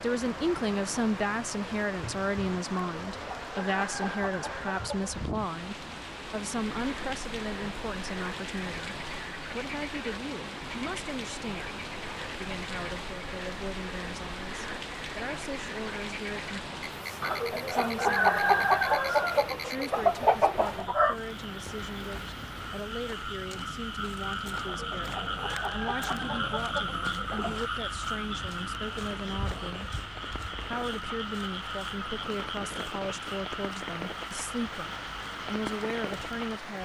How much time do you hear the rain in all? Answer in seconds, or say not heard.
37 s.